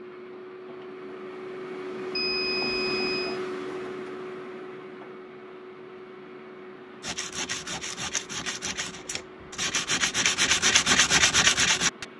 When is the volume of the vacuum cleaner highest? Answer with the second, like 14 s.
3 s.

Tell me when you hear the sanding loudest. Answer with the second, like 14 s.
11 s.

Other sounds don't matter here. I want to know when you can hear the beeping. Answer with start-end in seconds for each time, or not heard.
2.1-3.4.